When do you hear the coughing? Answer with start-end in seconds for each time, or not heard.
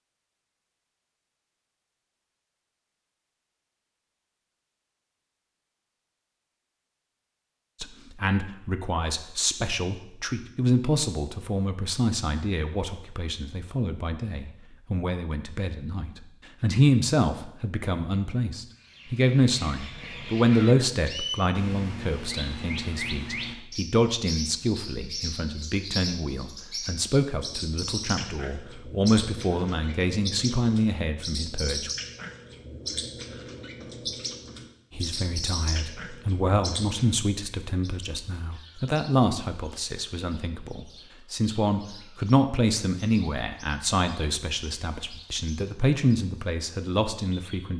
not heard.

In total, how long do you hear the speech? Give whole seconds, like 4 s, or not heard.
37 s.